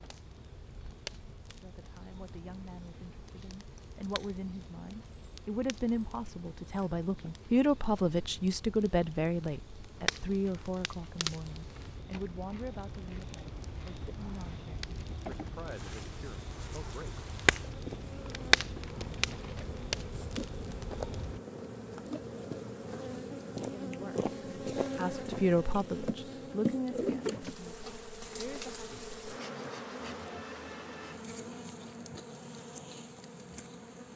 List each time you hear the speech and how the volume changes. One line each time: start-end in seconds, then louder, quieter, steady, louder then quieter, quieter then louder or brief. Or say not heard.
1.6-17.1 louder then quieter
23.6-28.9 louder then quieter.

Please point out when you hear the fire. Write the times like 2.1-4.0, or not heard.
0.0-21.4.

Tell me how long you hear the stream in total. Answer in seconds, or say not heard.
not heard.